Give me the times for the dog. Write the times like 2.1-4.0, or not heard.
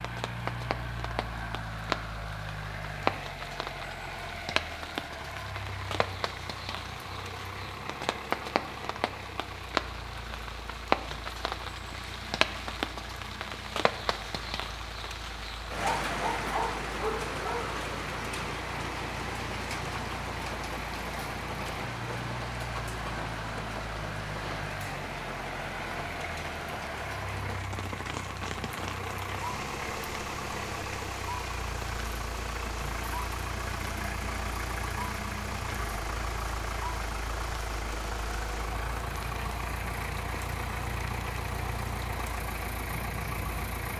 15.7-17.7.